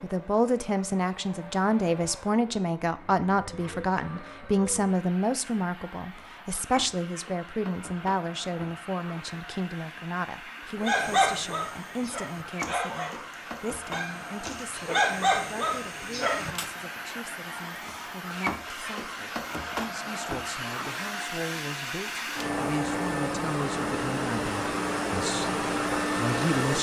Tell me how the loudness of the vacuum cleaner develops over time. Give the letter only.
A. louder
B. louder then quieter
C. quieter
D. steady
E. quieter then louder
A.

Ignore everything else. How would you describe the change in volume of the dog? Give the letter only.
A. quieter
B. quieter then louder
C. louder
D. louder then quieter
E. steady
B.